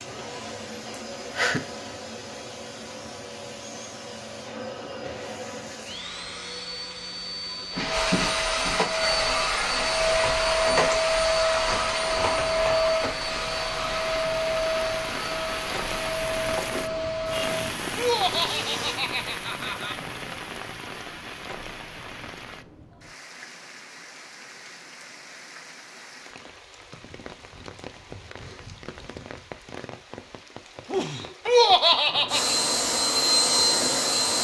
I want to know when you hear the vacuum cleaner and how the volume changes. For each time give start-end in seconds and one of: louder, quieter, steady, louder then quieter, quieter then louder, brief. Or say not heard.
0.0-19.0 louder then quieter
32.2-34.4 brief.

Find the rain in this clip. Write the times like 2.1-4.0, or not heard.
8.8-34.4.